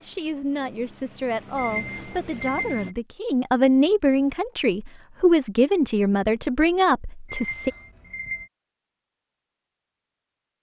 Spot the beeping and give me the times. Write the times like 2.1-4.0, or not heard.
1.6-3.0, 7.2-8.5.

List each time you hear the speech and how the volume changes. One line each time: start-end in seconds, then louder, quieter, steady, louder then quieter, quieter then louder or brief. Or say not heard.
0.0-7.7 louder.